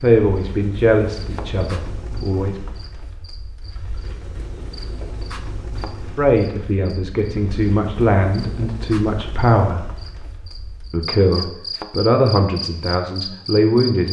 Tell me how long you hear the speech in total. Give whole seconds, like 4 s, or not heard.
9 s.